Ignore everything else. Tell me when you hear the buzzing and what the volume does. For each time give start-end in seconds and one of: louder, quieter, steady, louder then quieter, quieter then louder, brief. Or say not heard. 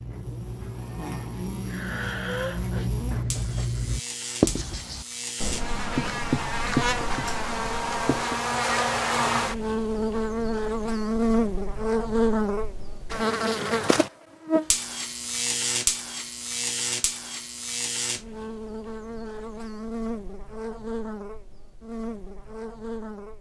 0.0-23.3 louder then quieter.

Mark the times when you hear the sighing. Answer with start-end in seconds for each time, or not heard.
1.6-2.9.